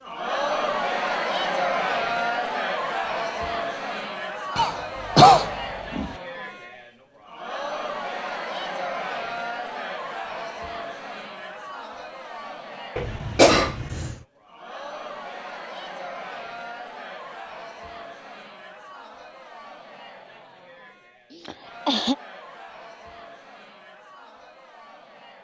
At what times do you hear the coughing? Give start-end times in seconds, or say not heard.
4.5-6.1, 12.9-14.2, 21.3-22.1.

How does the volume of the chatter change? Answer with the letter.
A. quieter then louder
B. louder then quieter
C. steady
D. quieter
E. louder
D.